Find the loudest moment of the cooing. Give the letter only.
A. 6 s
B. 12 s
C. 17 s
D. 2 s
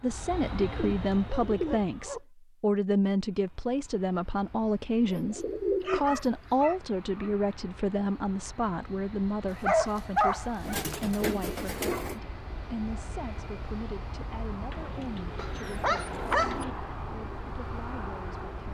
A.